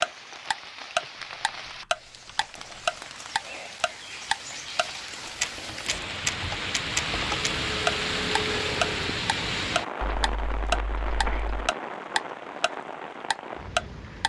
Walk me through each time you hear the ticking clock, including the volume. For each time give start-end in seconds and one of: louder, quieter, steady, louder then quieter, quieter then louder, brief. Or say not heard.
0.0-14.2 steady.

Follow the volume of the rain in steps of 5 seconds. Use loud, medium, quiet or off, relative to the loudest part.
medium, loud, medium.